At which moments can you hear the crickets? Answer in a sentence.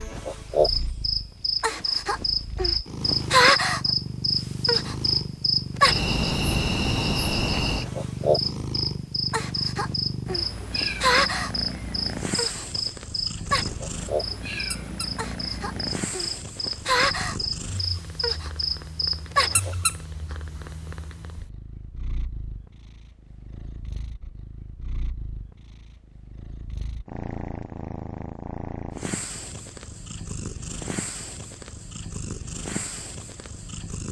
You can hear the crickets from 0.0 to 19.8 s.